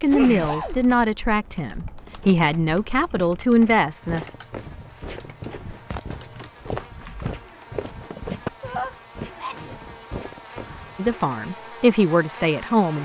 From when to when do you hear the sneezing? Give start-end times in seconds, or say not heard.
0.1-0.8, 8.6-9.8.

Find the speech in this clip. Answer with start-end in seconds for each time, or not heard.
0.0-4.2, 10.9-12.9.